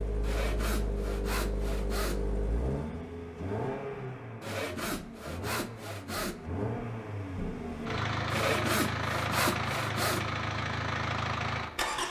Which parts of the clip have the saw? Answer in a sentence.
The saw can be heard from 0.2 to 2.2 s, from 4.4 to 6.4 s and from 8.3 to 10.2 s.